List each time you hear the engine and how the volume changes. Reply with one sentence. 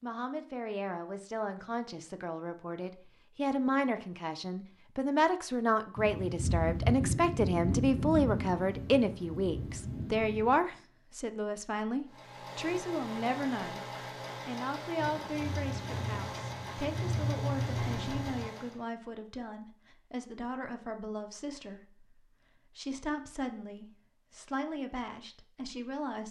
You can hear the engine from 12.1 to 18.8 s, at a steady volume.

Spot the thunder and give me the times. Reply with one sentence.
The thunder can be heard from 6.0 to 10.6 s and from 14.9 to 18.4 s.